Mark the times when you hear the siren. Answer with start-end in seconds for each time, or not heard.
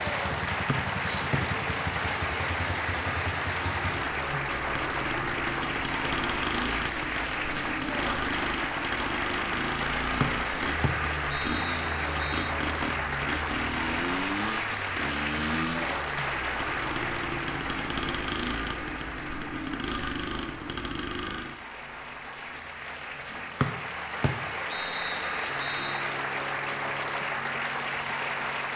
not heard.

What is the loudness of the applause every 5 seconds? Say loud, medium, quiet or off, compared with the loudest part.
loud, loud, loud, loud, medium, loud.